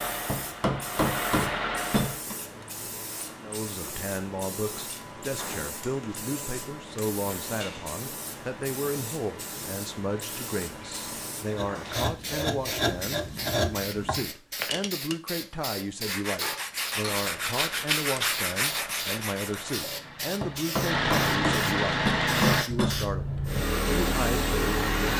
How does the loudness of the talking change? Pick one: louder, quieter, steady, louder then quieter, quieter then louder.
steady.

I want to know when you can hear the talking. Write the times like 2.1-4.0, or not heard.
3.4-24.9.